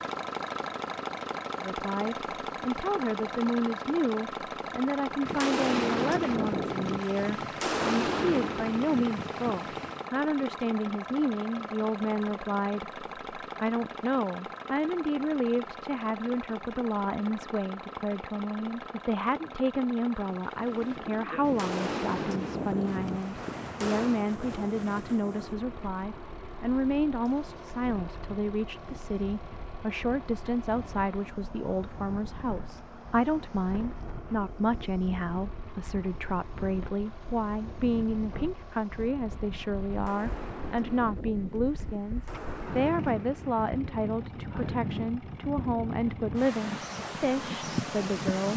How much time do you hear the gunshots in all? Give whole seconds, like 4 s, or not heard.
11 s.